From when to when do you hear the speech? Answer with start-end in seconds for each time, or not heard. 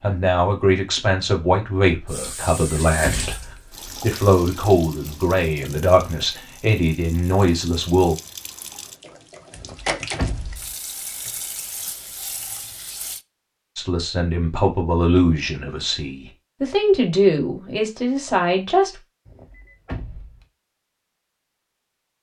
0.0-3.4, 4.0-8.2, 13.8-18.9.